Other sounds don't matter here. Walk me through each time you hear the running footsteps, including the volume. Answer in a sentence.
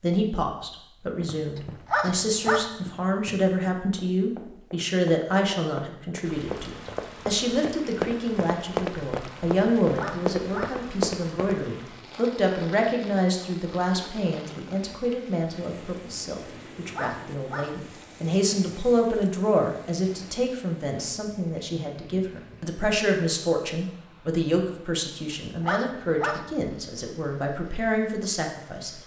The running footsteps can be heard from 1.1 to 11.6 s, getting louder.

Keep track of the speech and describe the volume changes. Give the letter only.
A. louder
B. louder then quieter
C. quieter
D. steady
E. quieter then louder
D.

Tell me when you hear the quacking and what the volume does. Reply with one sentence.
You can't hear the quacking here.